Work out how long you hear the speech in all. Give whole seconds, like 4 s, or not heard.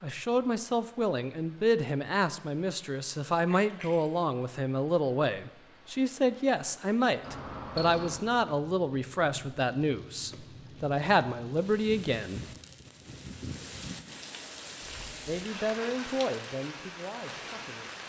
15 s.